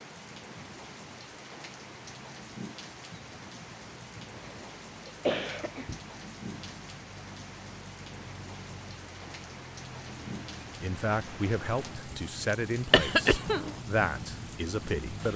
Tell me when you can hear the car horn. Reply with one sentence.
You can't hear the car horn here.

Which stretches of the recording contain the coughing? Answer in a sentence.
The coughing can be heard from 4.3 to 6.0 s and from 12.9 to 13.8 s.